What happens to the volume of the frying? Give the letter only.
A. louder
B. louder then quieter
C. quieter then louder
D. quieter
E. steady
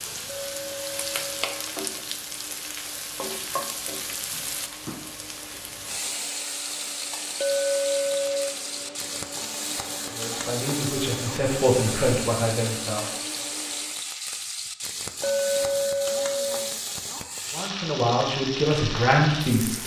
E.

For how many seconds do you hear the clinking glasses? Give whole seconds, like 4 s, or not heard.
4 s.